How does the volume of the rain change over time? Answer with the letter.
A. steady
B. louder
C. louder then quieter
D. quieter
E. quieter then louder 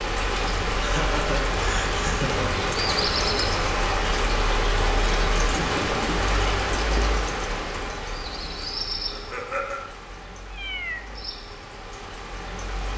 D.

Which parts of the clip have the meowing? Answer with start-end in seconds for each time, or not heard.
10.5-11.1.